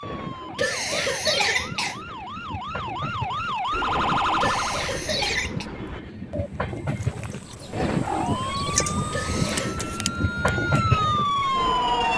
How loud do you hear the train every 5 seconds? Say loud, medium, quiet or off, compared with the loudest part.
medium, loud, loud.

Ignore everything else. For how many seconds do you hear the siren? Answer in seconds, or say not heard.
9 s.